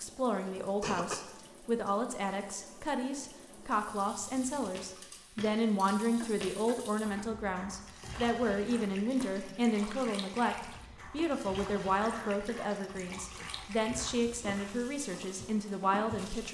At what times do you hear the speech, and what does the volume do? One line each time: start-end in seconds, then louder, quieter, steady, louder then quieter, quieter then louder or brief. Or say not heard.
0.0-16.4 steady.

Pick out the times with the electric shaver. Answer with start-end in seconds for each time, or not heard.
not heard.